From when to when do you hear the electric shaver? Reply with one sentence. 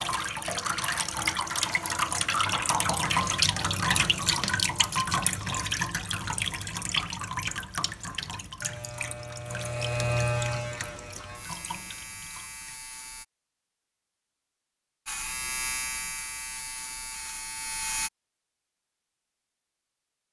You can hear the electric shaver from 8.6 to 13.2 s and from 15.1 to 18.1 s.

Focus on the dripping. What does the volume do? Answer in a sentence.
The volume of the dripping goes down.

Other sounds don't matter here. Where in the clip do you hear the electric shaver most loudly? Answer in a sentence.
The volume of the electric shaver peaks at 10 seconds.